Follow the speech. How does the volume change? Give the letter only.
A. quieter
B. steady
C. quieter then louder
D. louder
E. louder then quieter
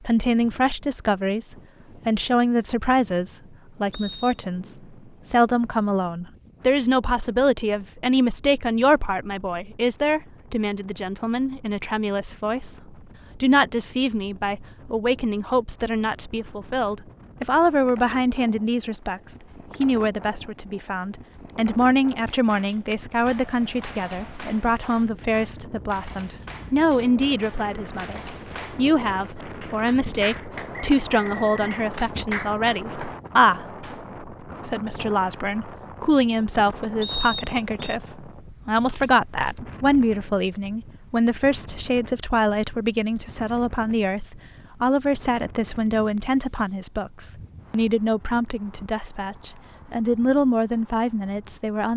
B.